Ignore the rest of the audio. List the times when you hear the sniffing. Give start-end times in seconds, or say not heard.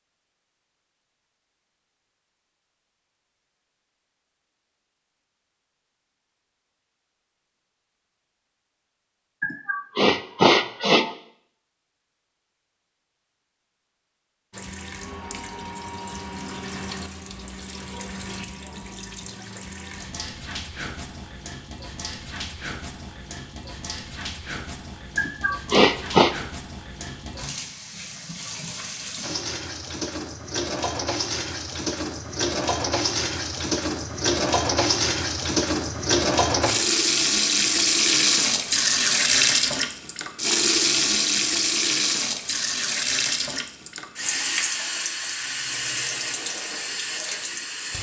9.4-11.1, 25.1-26.4.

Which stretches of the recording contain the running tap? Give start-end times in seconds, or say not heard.
14.5-47.9.